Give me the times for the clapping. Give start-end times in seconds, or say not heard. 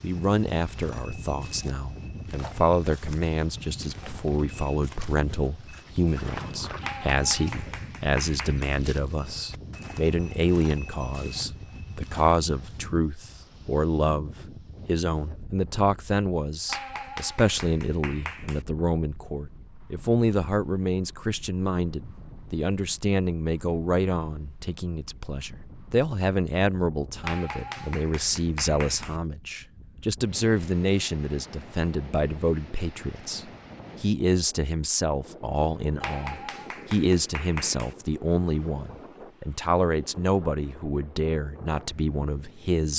6.8-8.8, 16.6-18.6, 27.2-29.2, 36.0-38.0.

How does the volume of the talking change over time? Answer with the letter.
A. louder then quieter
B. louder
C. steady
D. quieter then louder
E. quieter
C.